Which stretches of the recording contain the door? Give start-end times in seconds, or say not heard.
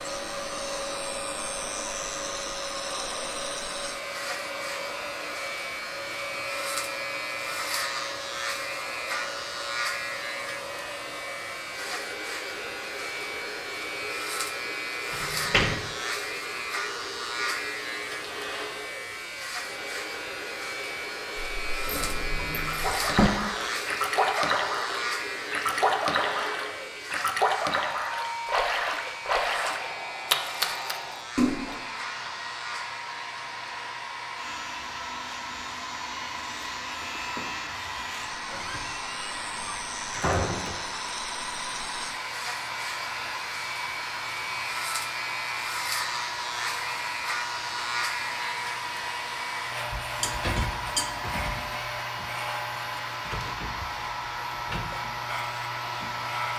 15.1-15.8, 21.9-23.3, 38.5-40.8.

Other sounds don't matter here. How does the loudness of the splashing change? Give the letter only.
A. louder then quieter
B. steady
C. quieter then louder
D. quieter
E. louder
B.